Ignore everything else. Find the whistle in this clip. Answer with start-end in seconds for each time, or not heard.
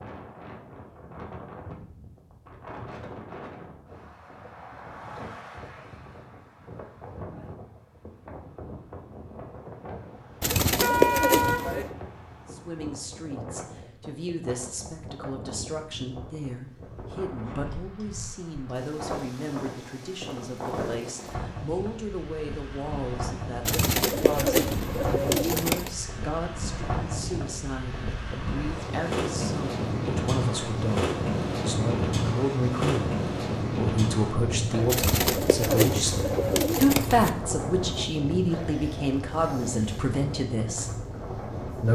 not heard.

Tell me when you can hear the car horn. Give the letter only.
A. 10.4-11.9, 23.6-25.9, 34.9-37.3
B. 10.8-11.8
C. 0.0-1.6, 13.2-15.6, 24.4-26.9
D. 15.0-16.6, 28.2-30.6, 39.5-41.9
B.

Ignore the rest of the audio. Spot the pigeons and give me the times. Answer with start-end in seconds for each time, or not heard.
10.4-11.9, 23.6-25.9, 34.9-37.3.